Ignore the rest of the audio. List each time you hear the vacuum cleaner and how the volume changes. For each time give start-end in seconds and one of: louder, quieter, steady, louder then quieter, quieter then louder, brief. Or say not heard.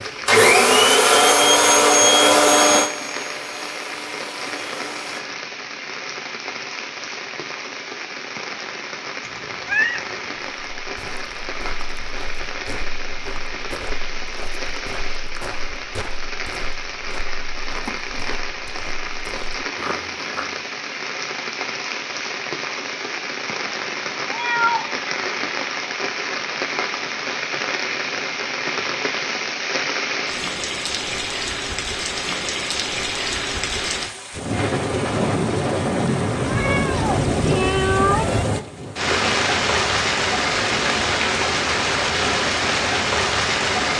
0.0-5.2 quieter.